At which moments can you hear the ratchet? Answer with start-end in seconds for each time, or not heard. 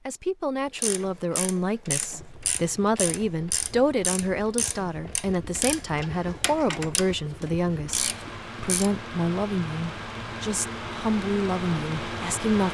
0.8-8.9.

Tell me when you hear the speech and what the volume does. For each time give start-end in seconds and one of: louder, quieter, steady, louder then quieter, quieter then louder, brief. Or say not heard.
0.1-12.6 steady.